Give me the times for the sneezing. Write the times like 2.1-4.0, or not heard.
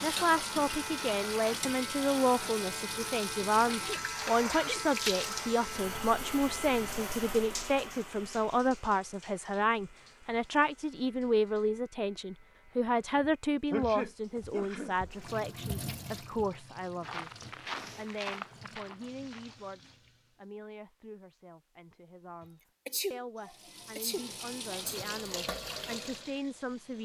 3.6-4.9, 13.7-15.4, 22.9-24.9.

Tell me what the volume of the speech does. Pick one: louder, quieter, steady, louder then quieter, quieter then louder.
quieter.